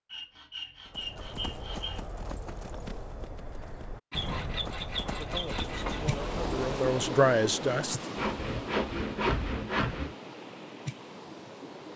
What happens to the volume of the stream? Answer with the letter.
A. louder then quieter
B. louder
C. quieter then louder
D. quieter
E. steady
D.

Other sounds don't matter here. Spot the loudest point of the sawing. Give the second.
9 s.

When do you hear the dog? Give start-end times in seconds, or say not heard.
not heard.